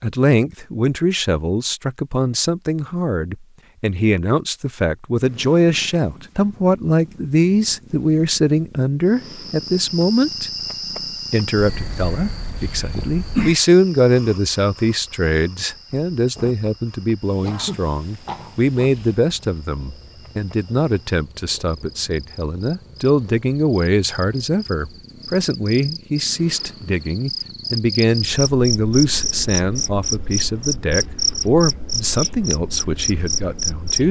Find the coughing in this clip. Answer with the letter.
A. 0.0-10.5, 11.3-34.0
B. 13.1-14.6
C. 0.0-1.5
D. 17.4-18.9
D.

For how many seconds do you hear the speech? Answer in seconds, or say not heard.
33 s.